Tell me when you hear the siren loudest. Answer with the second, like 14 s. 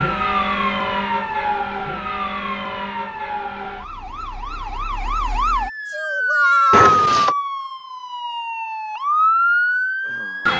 7 s.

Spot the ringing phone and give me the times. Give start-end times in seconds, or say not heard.
6.7-7.3.